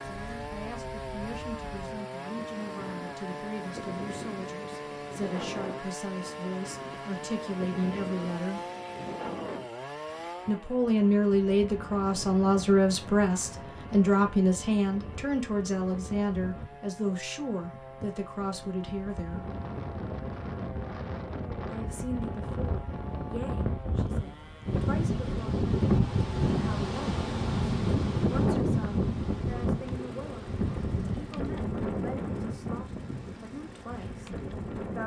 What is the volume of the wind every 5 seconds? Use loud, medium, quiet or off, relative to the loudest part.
quiet, quiet, quiet, quiet, medium, loud, medium.